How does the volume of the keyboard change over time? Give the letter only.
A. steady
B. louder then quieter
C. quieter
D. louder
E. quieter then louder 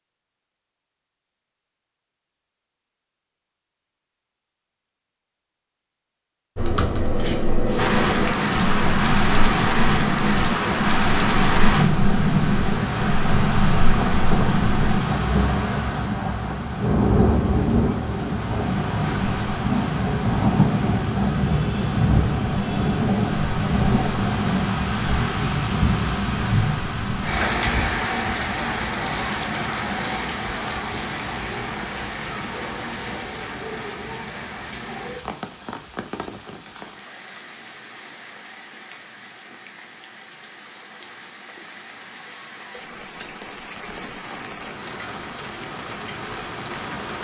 A.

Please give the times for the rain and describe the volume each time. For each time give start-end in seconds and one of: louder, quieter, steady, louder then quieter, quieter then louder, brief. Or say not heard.
7.8-47.1 quieter.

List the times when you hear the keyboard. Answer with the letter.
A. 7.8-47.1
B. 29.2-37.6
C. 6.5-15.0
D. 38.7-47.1
C.